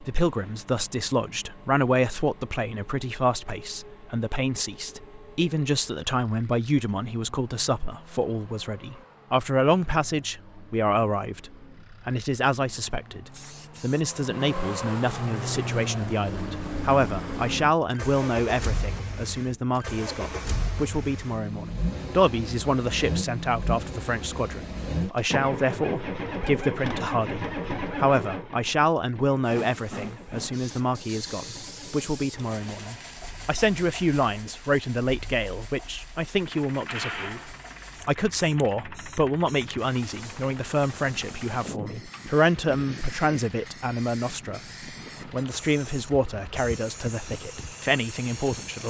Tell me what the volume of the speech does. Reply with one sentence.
The volume of the speech stays about the same.